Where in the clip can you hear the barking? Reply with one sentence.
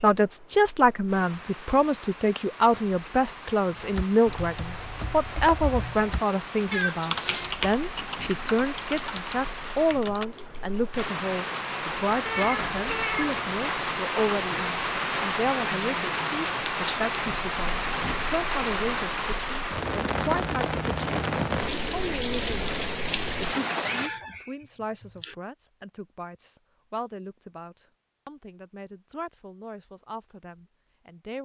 You can't hear the barking here.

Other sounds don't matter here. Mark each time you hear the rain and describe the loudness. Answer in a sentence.
The rain can be heard from 0.0 to 24.1 s, getting louder.